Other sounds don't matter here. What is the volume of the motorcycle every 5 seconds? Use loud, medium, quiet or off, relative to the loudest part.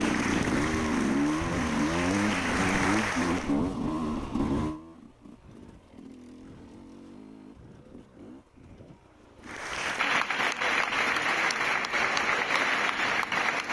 loud, quiet, quiet.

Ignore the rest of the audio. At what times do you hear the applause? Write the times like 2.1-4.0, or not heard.
0.0-3.5, 9.4-13.6.